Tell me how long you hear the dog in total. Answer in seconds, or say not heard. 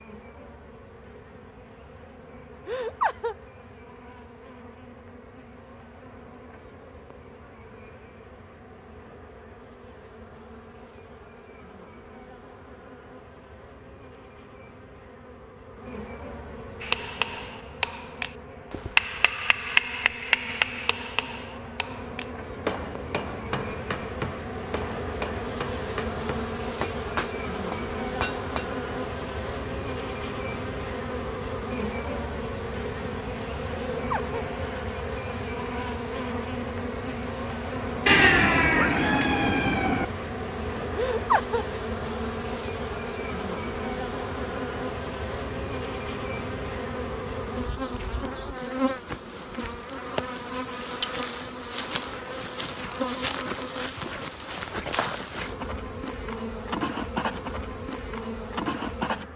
not heard.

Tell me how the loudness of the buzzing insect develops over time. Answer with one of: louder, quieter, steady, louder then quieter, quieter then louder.
louder.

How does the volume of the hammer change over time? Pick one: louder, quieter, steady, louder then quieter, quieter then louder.
quieter.